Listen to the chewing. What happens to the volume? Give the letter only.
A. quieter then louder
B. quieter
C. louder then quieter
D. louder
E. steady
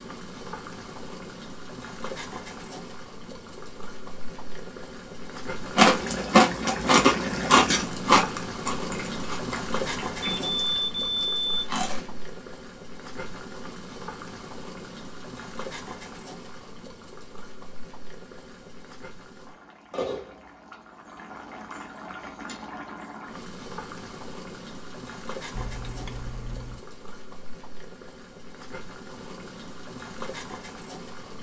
B.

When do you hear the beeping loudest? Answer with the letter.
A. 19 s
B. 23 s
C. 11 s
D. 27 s
C.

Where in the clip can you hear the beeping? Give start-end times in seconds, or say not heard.
10.4-11.9, 25.5-26.8.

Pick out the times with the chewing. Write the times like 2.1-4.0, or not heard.
5.8-12.2.